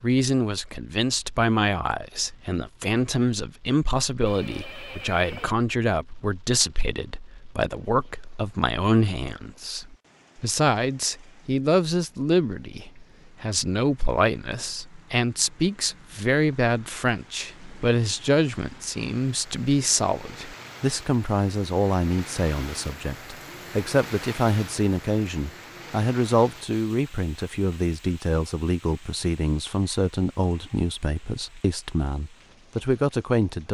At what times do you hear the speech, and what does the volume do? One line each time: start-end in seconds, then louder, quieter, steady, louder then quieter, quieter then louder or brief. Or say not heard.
0.0-33.6 steady.